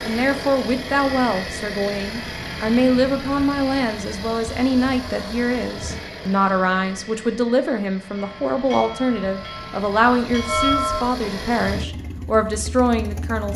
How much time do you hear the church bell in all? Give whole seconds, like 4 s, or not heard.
3 s.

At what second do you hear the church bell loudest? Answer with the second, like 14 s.
11 s.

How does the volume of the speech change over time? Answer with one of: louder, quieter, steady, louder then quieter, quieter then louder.
steady.